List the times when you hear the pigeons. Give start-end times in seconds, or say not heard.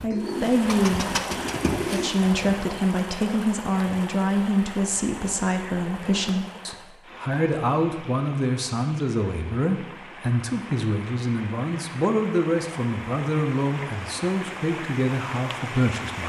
0.1-2.1.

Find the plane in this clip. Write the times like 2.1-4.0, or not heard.
not heard.